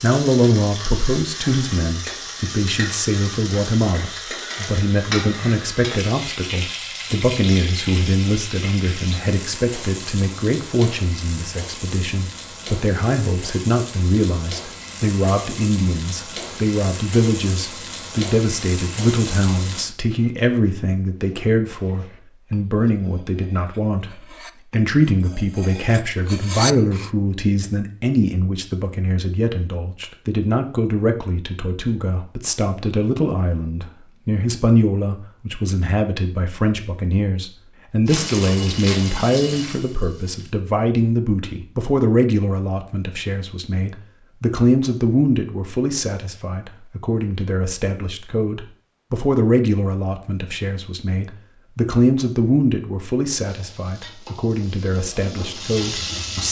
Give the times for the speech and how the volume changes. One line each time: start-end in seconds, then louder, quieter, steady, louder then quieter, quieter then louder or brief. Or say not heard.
0.0-56.4 steady.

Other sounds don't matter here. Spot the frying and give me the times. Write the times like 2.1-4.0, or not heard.
0.0-19.9, 38.0-40.5, 53.4-56.4.